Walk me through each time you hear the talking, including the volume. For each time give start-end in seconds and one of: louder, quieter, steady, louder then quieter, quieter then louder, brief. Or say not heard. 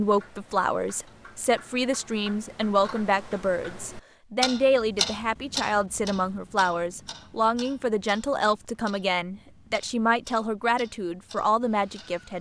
0.0-12.3 steady.